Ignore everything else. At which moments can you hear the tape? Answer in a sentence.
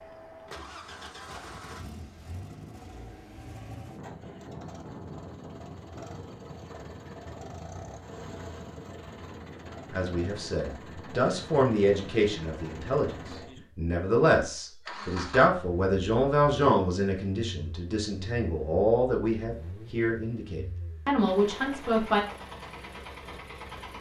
The tape can't be heard in this clip.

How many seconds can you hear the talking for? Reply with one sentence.
You can hear the talking for 12 seconds altogether.